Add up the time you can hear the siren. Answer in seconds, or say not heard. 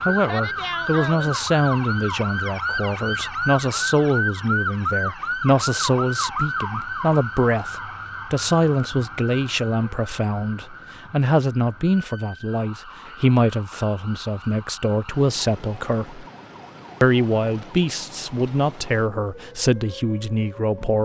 21 s.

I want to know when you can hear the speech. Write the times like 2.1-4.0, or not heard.
0.1-16.2, 17.0-21.0.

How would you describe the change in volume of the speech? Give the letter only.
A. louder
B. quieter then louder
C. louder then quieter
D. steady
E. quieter
D.